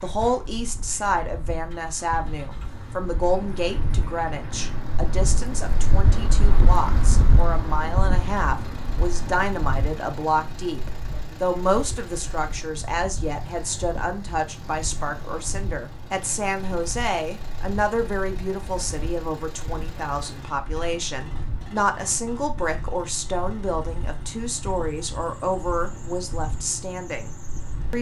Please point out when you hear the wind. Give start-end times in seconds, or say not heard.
0.0-27.9.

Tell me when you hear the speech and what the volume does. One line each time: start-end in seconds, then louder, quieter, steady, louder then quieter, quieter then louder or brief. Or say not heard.
0.0-27.9 steady.